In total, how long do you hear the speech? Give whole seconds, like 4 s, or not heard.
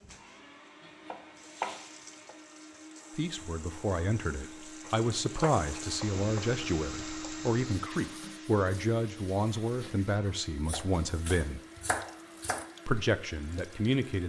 10 s.